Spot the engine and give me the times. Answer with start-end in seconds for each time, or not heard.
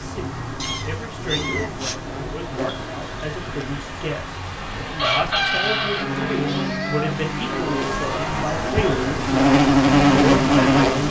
0.0-11.0.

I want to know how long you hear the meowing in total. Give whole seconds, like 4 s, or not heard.
3 s.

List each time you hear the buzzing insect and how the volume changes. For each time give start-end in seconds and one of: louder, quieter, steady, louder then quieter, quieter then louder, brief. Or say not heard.
0.0-11.0 louder.